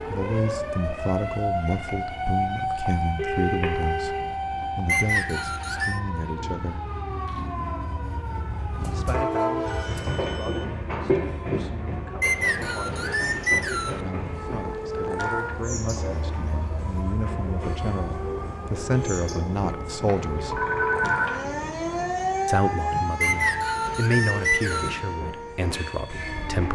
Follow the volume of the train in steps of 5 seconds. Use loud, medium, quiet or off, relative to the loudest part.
quiet, loud, loud, medium, medium, medium.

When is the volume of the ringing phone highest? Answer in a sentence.
The volume of the ringing phone peaks at 21 seconds.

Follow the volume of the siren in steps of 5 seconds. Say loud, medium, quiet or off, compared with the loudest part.
loud, medium, medium, medium, loud, medium.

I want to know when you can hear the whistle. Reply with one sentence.
You can hear the whistle from 4.8 to 6.0 s, from 12.2 to 14.0 s and from 23.2 to 25.0 s.